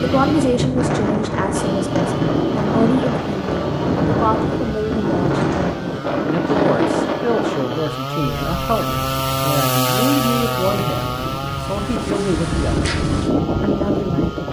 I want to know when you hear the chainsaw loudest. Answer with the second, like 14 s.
10 s.